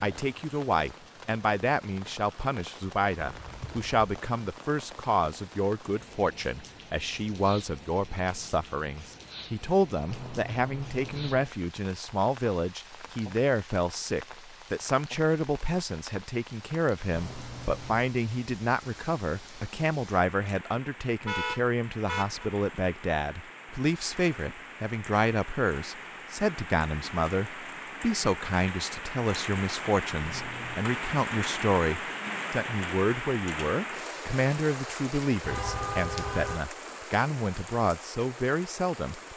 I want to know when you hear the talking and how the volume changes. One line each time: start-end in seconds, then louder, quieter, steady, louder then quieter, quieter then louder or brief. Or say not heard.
0.0-39.3 steady.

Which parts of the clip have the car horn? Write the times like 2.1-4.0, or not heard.
3.1-4.1, 21.2-22.5, 35.4-36.6.